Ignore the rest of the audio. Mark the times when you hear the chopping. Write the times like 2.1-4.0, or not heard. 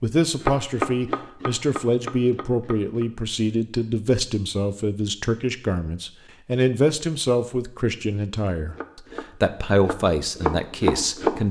0.3-3.0, 8.7-11.4.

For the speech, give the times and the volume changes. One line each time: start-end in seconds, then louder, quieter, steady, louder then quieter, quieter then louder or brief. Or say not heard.
0.0-11.4 steady.